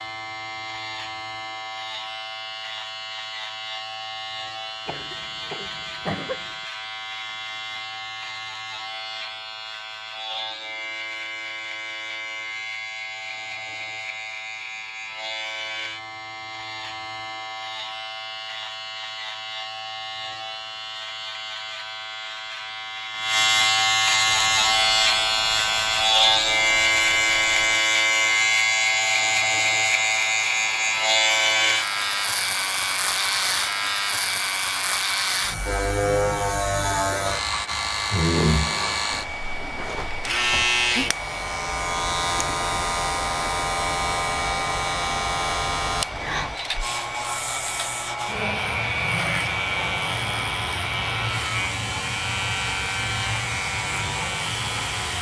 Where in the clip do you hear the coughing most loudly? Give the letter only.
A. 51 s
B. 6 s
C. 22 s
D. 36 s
B.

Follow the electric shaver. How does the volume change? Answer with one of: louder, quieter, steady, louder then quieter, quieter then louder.
louder then quieter.